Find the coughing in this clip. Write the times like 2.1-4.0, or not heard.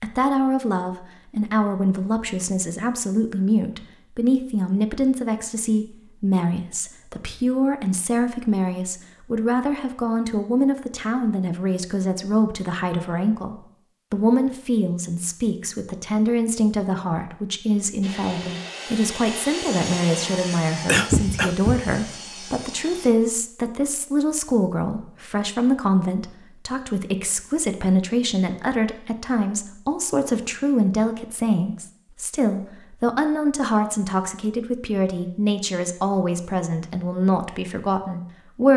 20.9-21.9.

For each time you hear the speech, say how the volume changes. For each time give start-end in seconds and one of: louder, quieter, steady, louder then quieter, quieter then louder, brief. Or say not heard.
0.0-38.7 steady.